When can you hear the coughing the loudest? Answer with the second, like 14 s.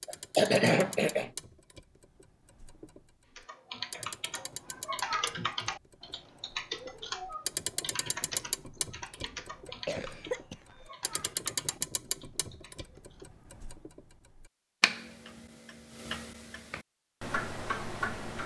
1 s.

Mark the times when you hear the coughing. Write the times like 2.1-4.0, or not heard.
0.1-1.3, 9.7-11.2.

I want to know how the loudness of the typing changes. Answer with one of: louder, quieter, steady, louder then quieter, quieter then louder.
quieter.